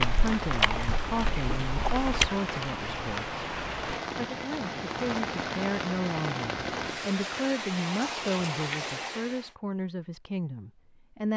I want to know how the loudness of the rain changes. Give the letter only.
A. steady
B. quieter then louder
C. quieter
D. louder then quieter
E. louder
A.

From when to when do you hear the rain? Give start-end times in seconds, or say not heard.
0.0-9.6.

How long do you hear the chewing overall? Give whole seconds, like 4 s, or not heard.
2 s.